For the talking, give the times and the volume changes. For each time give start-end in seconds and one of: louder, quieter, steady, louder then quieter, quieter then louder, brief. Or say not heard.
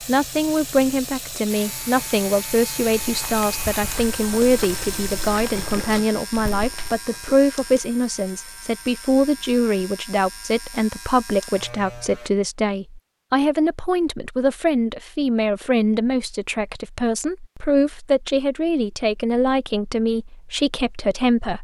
0.1-21.6 steady.